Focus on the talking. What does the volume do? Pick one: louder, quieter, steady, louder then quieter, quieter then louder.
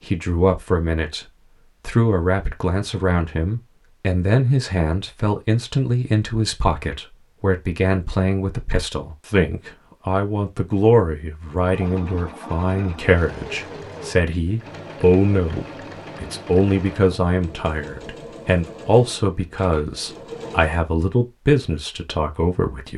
steady.